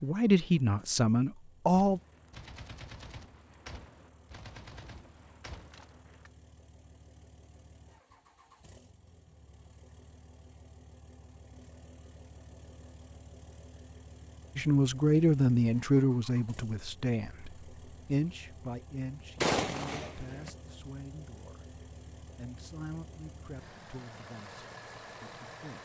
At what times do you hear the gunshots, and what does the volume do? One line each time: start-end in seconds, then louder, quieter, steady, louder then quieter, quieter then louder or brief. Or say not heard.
1.7-6.3 steady
19.4-20.5 brief.